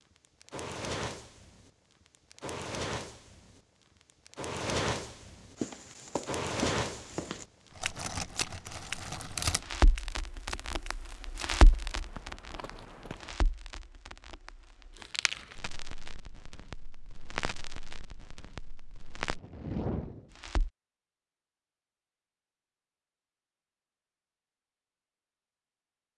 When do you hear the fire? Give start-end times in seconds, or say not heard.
0.2-20.7.